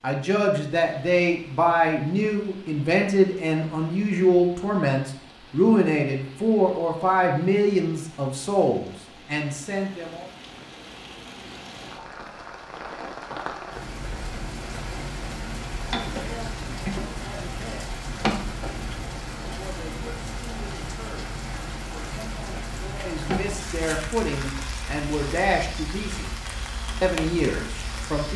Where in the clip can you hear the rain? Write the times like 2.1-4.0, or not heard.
0.0-28.3.